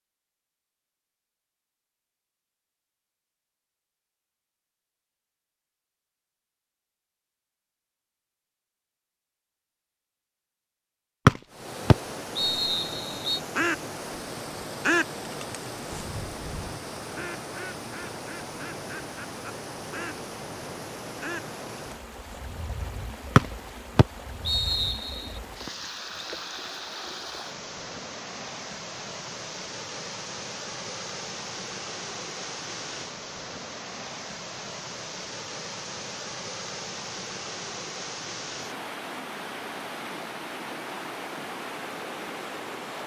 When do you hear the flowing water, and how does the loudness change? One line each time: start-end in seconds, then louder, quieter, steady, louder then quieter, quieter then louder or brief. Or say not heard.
11.4-43.0 steady.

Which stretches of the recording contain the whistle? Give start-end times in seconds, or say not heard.
11.2-13.4, 23.4-25.2.